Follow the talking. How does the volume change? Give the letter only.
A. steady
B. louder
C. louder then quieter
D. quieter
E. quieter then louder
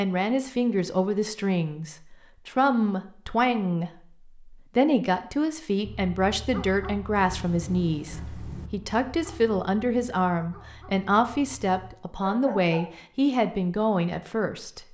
A.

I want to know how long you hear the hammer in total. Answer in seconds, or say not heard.
not heard.